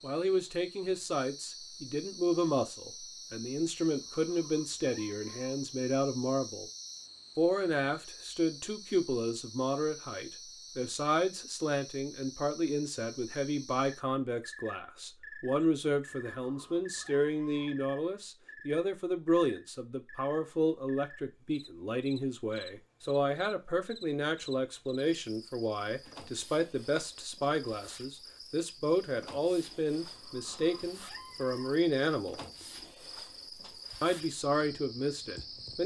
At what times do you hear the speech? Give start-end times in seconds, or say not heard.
0.0-6.7, 7.3-32.4, 34.0-35.8.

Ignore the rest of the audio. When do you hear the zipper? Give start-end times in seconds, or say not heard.
not heard.